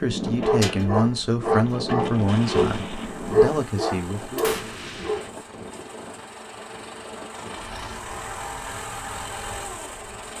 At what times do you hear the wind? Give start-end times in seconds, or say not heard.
0.0-10.3.